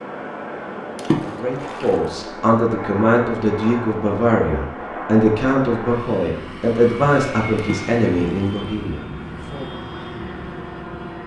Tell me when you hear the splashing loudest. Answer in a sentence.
The volume of the splashing peaks at 1 second.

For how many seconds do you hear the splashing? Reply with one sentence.
The splashing can be heard for 2 seconds in total.